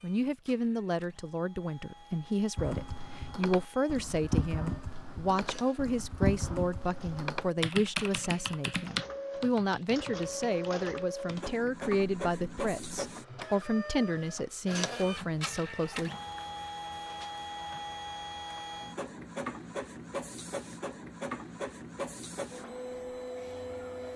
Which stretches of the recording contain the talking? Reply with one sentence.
You can hear the talking from 0.0 to 16.1 s.